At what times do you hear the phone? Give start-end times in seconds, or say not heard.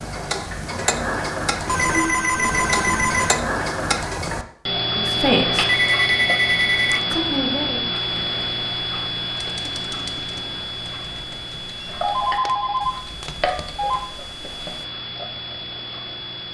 1.6-3.4, 5.7-7.0, 11.8-14.0.